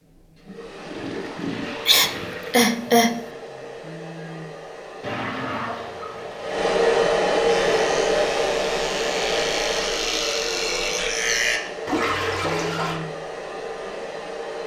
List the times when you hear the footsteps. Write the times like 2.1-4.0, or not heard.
not heard.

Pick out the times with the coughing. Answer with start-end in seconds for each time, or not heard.
1.9-3.2.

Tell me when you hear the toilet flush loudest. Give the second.
12 s.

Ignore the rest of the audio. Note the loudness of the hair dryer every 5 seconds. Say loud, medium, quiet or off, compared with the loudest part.
quiet, loud, medium.